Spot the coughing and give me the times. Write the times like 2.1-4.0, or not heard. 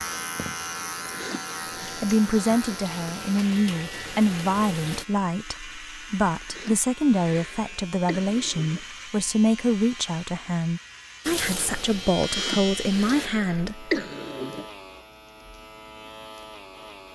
1.0-2.0, 6.3-8.8, 12.2-14.7.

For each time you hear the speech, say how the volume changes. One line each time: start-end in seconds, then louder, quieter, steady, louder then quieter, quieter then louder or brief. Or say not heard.
1.9-13.9 steady.